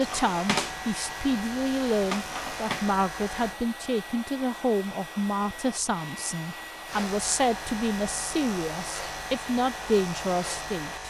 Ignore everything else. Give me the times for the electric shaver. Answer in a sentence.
The electric shaver can be heard from 0.0 to 3.6 s and from 6.8 to 11.0 s.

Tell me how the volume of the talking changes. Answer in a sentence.
The volume of the talking stays about the same.